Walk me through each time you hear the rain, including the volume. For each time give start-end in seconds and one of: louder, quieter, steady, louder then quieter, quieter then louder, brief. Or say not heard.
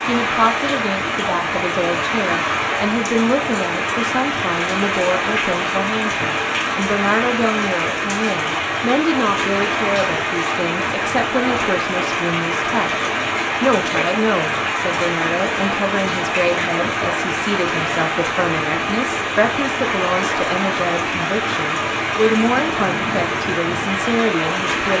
0.0-24.9 steady.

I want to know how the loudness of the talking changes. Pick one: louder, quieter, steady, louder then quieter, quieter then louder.
steady.